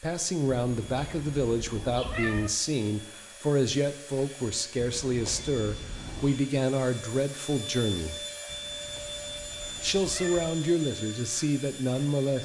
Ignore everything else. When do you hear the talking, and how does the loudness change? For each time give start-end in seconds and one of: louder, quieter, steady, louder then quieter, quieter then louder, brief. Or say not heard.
0.0-8.2 steady
9.8-12.4 brief.